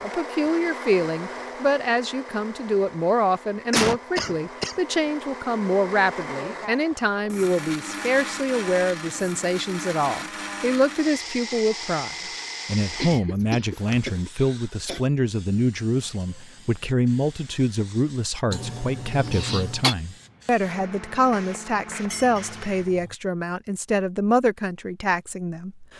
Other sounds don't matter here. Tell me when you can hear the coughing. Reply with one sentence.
You can hear the coughing from 3.7 to 4.8 s, from 12.9 to 15.0 s and from 18.5 to 19.9 s.